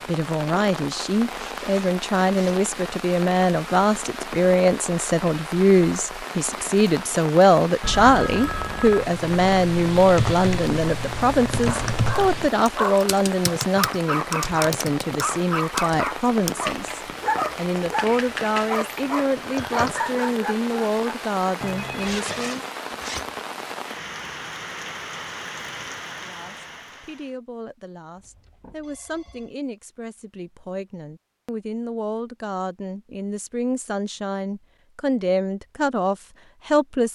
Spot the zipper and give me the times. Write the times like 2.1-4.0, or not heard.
1.3-2.5, 22.0-23.8.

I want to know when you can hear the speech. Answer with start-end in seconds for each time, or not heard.
0.1-22.6, 26.1-37.1.